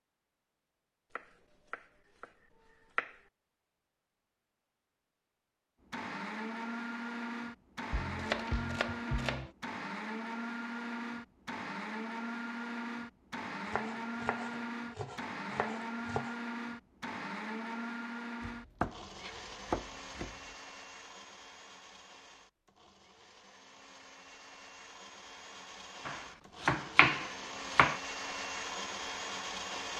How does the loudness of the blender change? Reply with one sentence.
The volume of the blender goes down, then up.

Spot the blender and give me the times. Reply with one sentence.
You can hear the blender from 5.8 to 29.9 s.